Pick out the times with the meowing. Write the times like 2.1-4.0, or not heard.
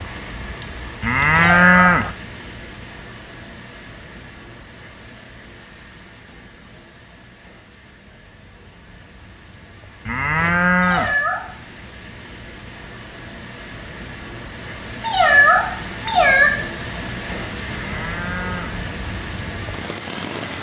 1.3-1.9, 10.8-11.4, 15.0-16.5.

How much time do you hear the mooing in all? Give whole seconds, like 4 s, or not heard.
3 s.